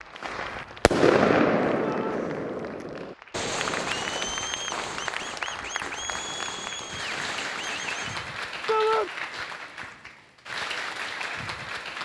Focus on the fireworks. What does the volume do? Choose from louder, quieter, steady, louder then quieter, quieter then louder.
quieter.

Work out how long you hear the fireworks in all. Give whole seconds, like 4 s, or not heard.
8 s.